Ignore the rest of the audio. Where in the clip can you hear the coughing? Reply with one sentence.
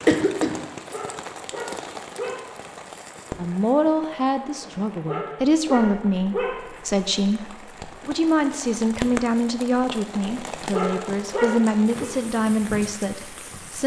You can hear the coughing from 0.1 to 0.7 s.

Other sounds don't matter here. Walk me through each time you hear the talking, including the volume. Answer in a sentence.
The talking can be heard from 3.4 to 13.8 s, at a steady volume.